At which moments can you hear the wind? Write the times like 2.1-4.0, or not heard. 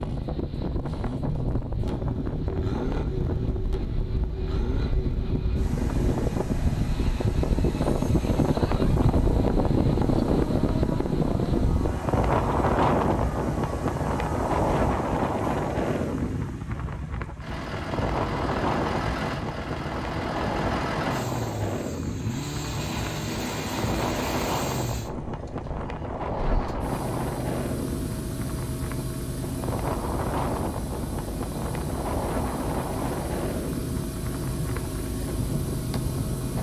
0.0-36.5.